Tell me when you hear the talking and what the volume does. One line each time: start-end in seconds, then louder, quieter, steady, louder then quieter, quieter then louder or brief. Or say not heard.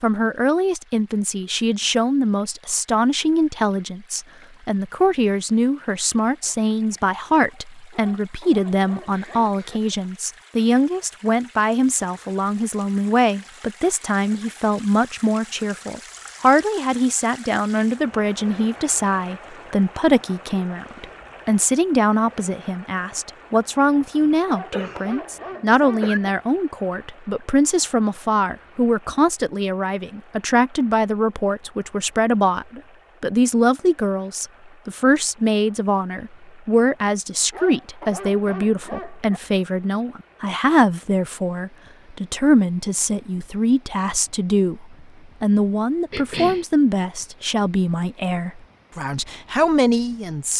0.0-50.5 steady.